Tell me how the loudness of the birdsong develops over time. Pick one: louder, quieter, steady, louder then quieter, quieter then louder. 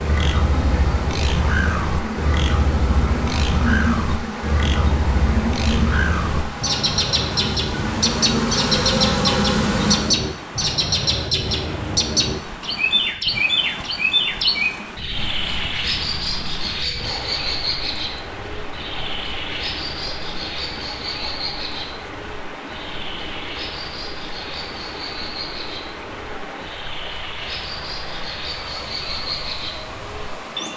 quieter.